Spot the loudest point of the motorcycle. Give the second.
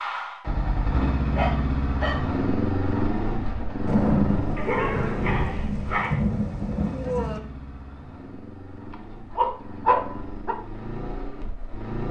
3 s.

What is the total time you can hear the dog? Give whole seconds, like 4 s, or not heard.
4 s.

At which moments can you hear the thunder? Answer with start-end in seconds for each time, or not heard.
3.9-7.4.